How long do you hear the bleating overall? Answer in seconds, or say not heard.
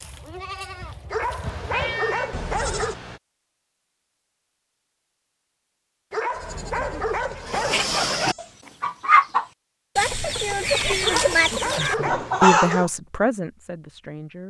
5 s.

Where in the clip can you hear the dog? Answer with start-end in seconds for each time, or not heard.
1.1-3.0, 6.1-7.9, 11.0-12.8.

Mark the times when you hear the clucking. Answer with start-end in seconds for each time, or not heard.
7.3-12.9.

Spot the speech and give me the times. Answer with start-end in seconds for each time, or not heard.
11.5-14.4.